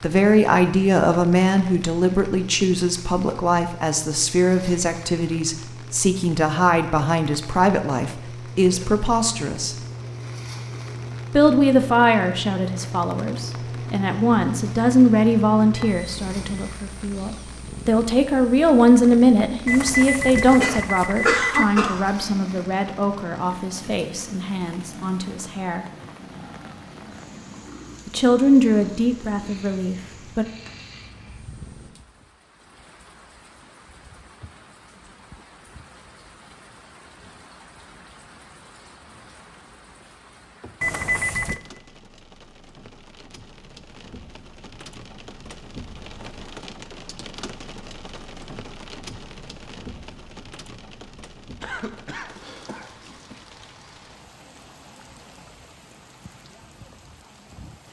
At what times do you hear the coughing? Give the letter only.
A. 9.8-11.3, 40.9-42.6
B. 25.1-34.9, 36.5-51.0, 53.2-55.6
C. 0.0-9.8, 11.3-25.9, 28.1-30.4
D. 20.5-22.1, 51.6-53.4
D.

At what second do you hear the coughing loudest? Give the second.
21 s.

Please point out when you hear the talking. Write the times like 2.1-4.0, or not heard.
0.0-9.8, 11.3-25.9, 28.1-30.4.